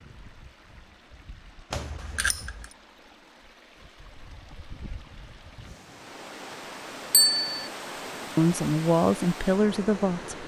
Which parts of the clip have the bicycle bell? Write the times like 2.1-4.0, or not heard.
1.7-2.6, 7.1-7.7.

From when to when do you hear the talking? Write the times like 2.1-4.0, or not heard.
8.3-10.4.